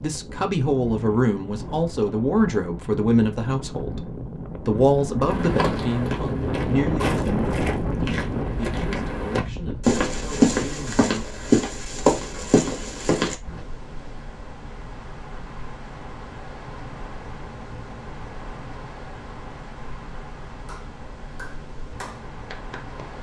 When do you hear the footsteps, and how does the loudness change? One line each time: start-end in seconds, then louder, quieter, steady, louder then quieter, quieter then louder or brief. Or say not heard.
5.3-13.7 louder.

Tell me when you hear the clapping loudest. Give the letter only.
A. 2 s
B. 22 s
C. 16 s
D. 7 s
B.